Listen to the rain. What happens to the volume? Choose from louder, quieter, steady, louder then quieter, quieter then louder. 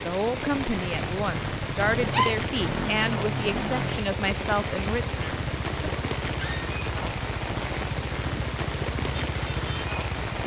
steady.